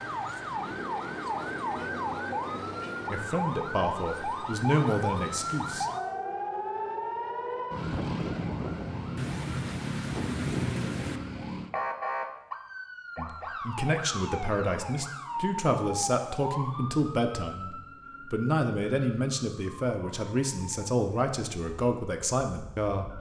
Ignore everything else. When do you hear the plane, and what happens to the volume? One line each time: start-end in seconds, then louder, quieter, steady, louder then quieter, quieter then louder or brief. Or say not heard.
not heard.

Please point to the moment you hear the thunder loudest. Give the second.
11 s.